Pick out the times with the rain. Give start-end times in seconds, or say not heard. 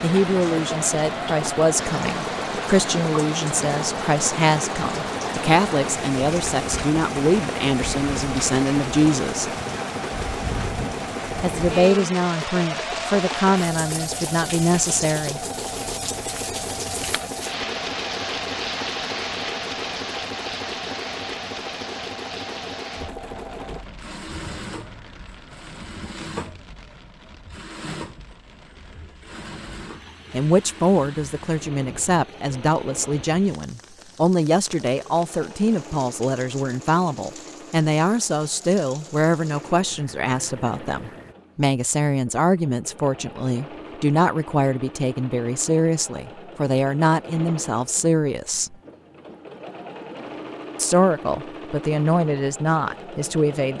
0.0-41.4.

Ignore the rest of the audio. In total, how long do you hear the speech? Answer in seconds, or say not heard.
35 s.